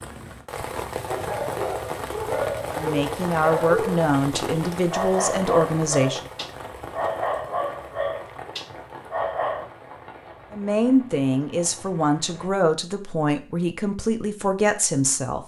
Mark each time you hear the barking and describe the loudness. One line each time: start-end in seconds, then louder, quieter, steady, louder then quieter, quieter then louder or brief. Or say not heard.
1.1-9.7 steady.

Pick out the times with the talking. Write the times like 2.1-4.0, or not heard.
2.7-6.2, 10.5-15.4.